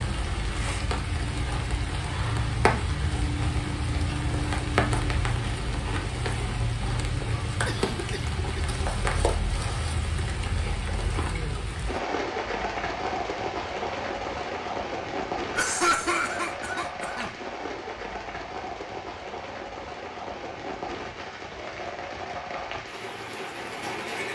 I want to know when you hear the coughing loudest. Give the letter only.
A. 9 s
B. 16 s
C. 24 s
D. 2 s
B.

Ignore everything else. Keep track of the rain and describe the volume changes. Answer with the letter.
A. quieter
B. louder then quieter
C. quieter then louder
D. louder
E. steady
A.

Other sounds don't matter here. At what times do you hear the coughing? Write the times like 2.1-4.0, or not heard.
7.7-8.7, 15.6-17.4.